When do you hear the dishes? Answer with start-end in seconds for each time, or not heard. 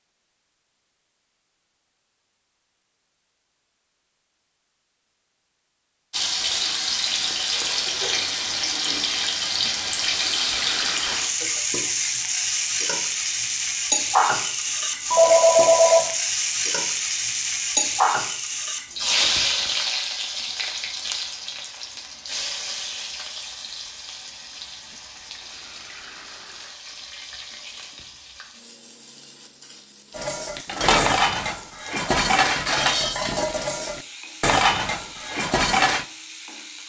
30.1-36.0.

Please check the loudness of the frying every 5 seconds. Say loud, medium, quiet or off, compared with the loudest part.
off, loud, loud, loud, medium, quiet, quiet, quiet.